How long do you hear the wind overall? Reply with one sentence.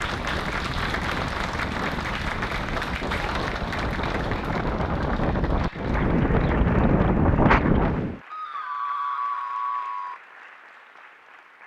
You can hear the wind for 8 seconds altogether.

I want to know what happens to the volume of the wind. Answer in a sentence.
The loudness of the wind goes up.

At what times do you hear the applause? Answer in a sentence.
You can hear the applause from 0.0 to 11.6 s.